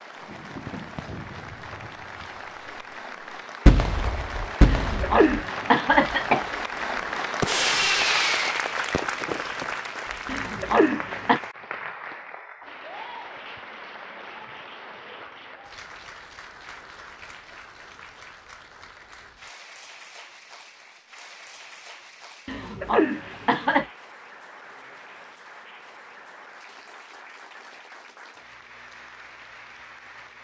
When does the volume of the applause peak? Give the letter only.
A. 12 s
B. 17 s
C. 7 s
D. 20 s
C.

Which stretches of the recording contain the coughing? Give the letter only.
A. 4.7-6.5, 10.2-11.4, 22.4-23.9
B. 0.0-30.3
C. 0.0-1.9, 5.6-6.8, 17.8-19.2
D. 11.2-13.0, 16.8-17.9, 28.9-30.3
A.